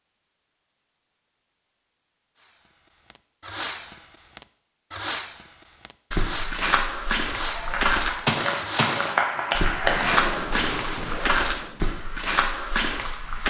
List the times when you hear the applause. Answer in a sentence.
You can hear the applause from 7.4 to 10.2 s.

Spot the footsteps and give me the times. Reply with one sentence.
The footsteps can be heard from 6.1 to 13.4 s.